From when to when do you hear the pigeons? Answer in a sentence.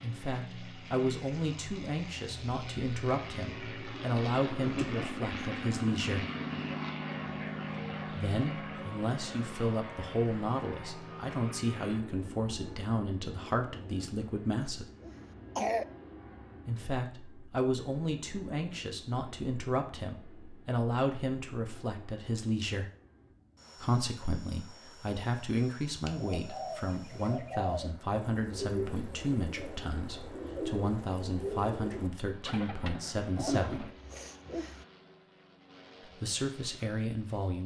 You can hear the pigeons from 26.0 to 33.9 s.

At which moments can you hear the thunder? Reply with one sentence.
The thunder can't be heard in this clip.